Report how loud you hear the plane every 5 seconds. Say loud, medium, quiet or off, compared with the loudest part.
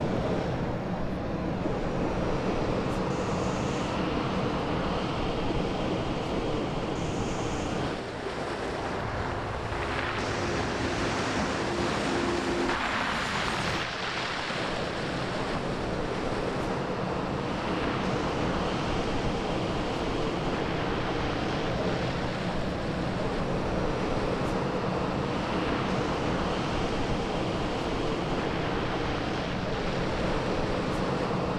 loud, loud, medium, loud, loud, loud, loud.